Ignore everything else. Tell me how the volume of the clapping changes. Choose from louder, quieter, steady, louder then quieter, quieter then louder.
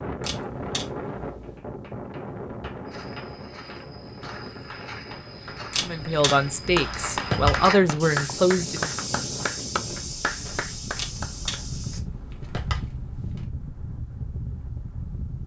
louder.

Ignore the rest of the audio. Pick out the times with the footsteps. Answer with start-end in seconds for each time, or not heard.
2.9-13.5.